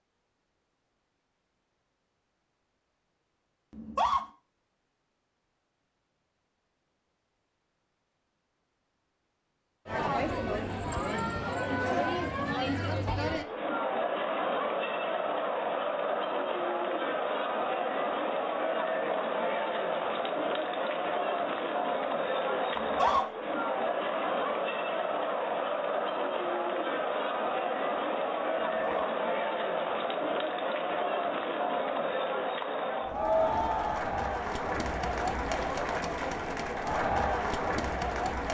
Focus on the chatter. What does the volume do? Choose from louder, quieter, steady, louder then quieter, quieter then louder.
steady.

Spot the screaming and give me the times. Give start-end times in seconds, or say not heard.
3.7-4.2, 22.8-23.2, 28.6-29.1.